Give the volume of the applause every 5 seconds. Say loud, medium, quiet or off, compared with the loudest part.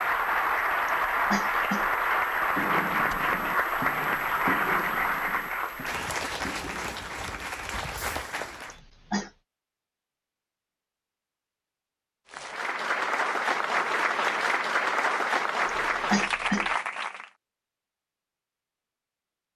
loud, medium, loud, loud.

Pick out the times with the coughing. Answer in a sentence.
You can hear the coughing from 0.8 to 1.9 s, from 8.7 to 9.3 s and from 15.7 to 16.7 s.